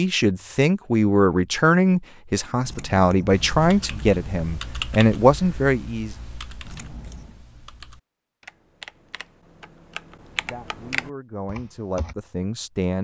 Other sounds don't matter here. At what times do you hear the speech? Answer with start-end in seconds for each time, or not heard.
0.0-6.2, 10.4-12.9.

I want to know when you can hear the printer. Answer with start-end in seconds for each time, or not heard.
not heard.